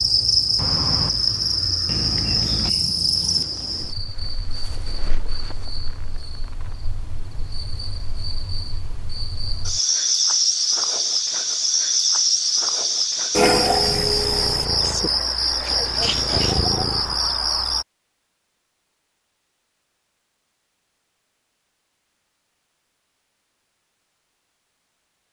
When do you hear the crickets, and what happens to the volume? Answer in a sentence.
You can hear the crickets from 0.0 to 17.9 s, getting quieter then louder.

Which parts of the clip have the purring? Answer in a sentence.
The purring can be heard from 13.8 to 17.2 s.